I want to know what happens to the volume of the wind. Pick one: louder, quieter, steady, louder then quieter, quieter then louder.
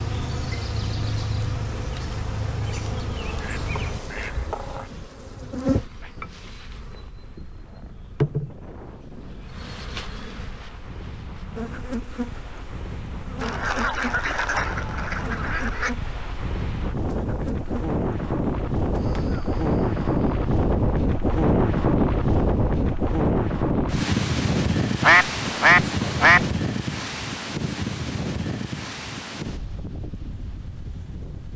louder then quieter.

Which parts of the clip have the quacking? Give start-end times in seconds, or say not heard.
3.2-4.9, 13.4-15.9, 25.0-26.4.